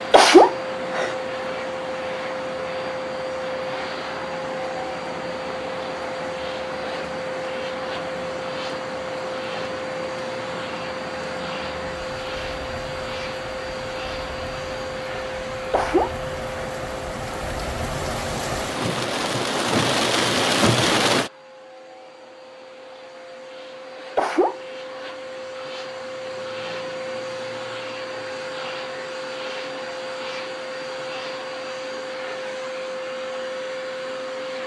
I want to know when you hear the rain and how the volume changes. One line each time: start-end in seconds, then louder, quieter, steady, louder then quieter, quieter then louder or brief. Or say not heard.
0.0-21.3 louder.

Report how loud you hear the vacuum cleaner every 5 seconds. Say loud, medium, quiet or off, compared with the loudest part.
loud, loud, loud, loud, medium, loud, loud.